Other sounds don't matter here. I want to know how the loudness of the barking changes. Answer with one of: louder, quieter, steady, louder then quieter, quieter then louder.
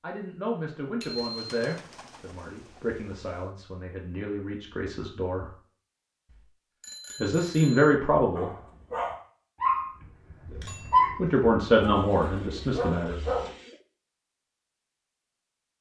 louder then quieter.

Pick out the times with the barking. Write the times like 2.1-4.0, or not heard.
8.3-13.5.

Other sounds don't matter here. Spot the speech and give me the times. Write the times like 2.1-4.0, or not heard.
0.0-5.5, 7.2-8.5, 10.5-13.2.